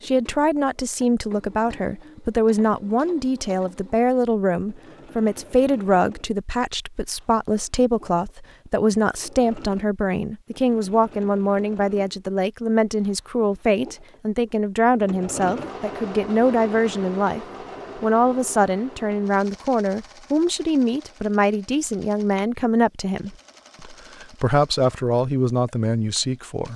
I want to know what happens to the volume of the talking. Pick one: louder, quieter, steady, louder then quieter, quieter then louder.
steady.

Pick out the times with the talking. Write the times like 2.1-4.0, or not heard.
0.0-26.7.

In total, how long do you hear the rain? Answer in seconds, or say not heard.
not heard.